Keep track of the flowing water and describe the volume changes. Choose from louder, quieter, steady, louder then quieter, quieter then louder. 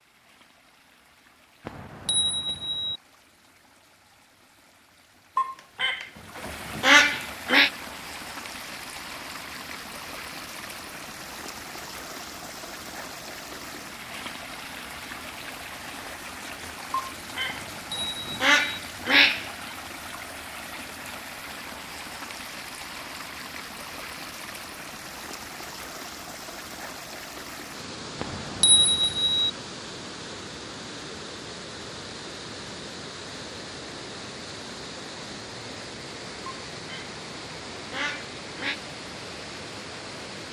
louder.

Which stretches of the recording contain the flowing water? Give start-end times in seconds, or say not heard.
0.0-40.4.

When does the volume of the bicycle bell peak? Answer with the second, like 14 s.
29 s.